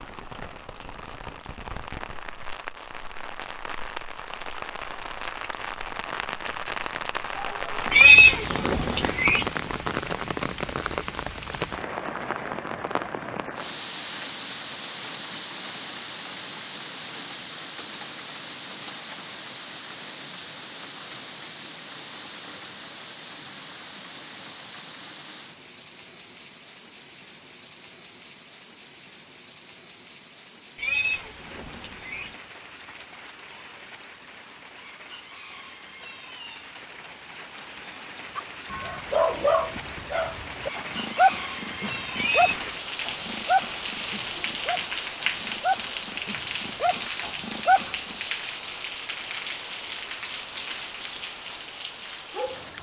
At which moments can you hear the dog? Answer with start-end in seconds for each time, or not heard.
38.4-48.1.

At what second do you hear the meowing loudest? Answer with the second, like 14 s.
8 s.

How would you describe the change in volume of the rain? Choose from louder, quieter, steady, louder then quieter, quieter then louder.
quieter then louder.